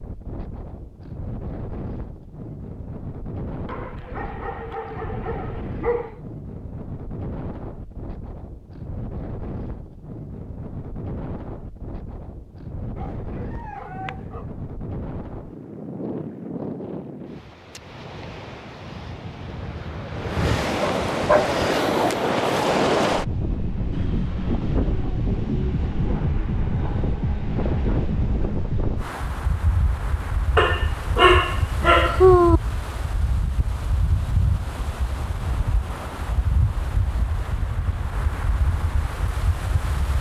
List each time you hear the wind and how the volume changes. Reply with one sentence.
You can hear the wind from 0.0 to 40.1 s, getting louder then quieter.